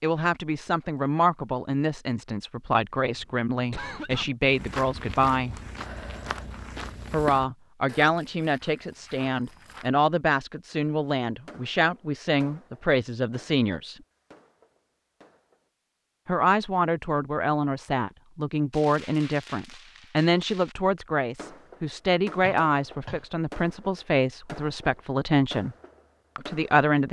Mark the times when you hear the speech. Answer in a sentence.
The speech can be heard from 0.0 to 5.5 s, from 7.1 to 13.9 s, from 16.2 to 25.8 s and from 26.4 to 27.0 s.